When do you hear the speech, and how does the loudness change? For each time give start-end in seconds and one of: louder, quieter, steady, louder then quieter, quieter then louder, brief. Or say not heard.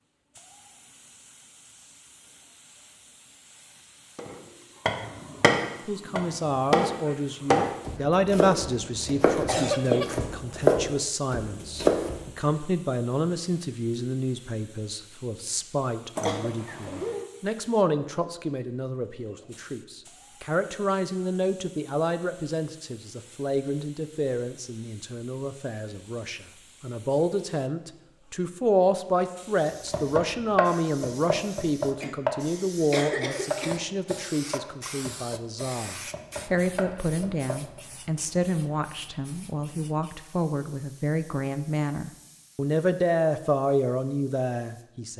5.8-45.1 steady.